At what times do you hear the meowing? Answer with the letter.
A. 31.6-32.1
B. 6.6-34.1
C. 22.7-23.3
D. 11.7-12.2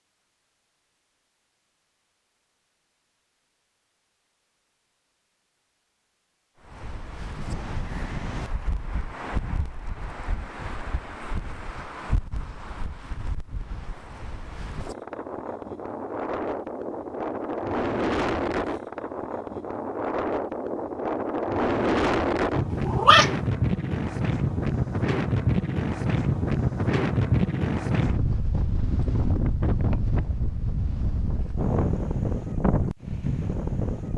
C.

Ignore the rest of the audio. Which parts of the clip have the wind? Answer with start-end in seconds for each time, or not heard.
6.6-34.1.